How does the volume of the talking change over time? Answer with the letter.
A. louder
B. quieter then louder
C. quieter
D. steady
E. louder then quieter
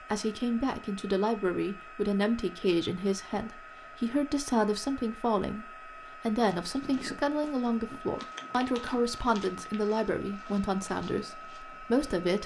D.